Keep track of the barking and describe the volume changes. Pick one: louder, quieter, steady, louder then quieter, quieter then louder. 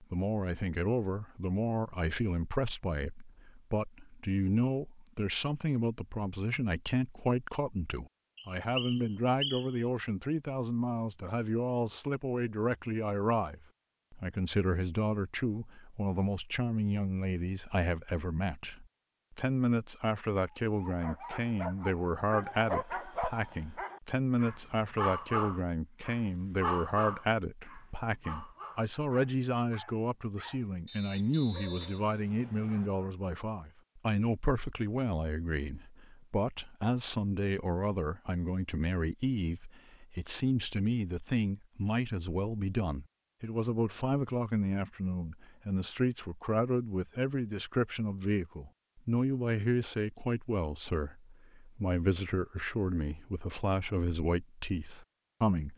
quieter.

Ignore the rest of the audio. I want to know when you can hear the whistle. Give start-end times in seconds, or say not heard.
8.3-9.8, 30.9-32.9.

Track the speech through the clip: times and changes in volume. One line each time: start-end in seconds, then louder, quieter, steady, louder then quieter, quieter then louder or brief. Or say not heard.
0.0-55.7 steady.